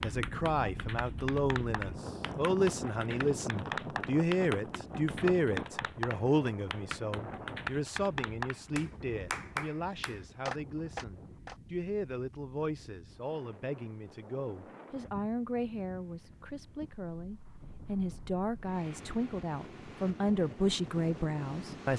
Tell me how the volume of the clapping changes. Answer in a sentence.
The loudness of the clapping goes up.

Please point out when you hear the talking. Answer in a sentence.
You can hear the talking from 0.0 to 21.9 s.